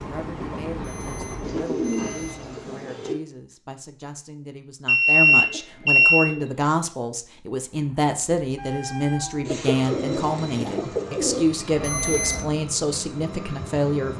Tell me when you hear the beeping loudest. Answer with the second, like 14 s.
5 s.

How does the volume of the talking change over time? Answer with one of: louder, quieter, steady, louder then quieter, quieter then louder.
louder.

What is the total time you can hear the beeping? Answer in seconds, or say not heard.
4 s.